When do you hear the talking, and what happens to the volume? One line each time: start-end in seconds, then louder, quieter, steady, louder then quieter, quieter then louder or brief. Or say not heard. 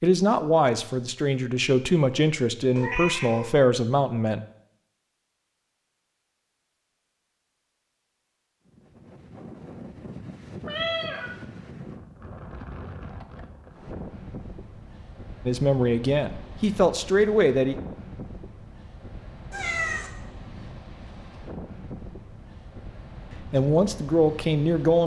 0.0-4.4 steady
15.4-17.8 brief
23.4-25.0 brief.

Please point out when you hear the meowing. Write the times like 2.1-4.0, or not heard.
2.8-3.5, 10.7-11.3, 19.5-20.1.